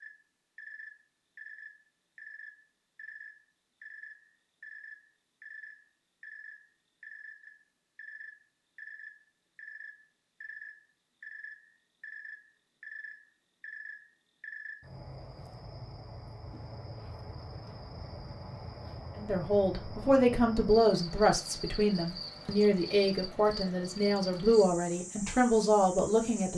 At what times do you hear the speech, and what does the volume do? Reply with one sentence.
You can hear the speech from 19.1 to 26.5 s, at a steady volume.